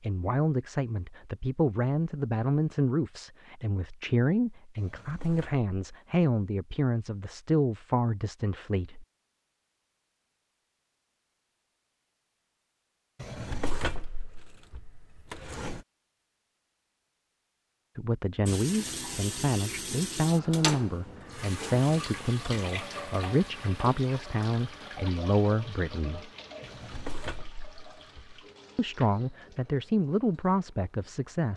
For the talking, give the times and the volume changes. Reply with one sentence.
The talking can be heard from 0.0 to 9.1 s, at a steady volume; from 17.9 to 26.3 s, at a steady volume; and briefly from 28.8 to 31.5 s.